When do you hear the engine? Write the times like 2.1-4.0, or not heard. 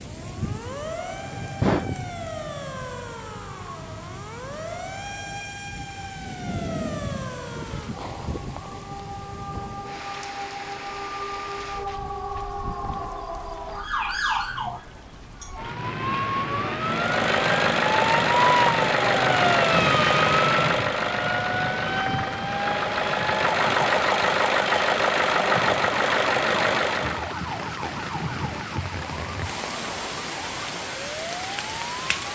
16.8-27.4.